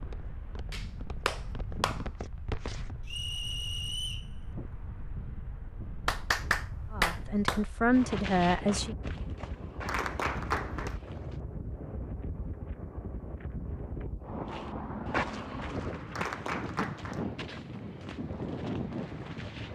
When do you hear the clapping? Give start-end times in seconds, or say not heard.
0.7-2.0, 6.0-7.7, 9.8-11.0, 16.1-17.2.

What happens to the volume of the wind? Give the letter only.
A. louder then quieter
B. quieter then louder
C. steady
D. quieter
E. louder
E.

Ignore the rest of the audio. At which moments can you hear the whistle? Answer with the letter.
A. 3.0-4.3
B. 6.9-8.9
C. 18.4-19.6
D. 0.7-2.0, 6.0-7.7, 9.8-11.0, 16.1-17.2
A.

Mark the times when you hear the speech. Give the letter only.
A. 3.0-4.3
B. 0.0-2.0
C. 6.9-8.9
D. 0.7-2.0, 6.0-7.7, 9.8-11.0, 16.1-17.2
C.